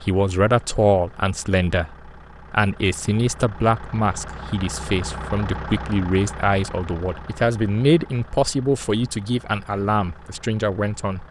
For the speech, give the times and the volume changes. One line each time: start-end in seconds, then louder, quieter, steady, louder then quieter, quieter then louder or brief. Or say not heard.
0.0-11.2 steady.